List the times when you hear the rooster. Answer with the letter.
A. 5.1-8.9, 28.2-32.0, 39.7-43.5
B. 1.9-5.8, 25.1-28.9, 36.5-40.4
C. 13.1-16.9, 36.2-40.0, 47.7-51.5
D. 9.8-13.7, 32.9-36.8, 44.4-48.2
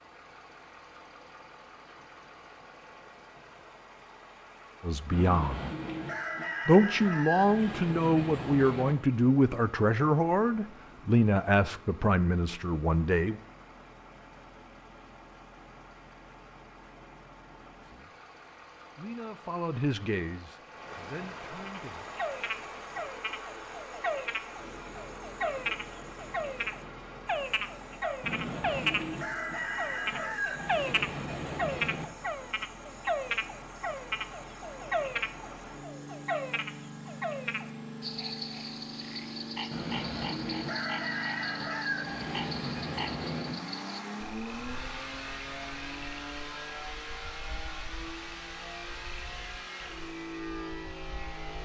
A.